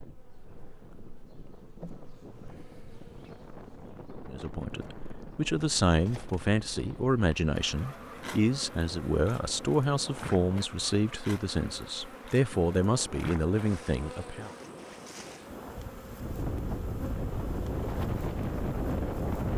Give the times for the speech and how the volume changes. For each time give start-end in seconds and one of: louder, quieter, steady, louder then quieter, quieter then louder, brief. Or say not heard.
4.2-14.5 steady.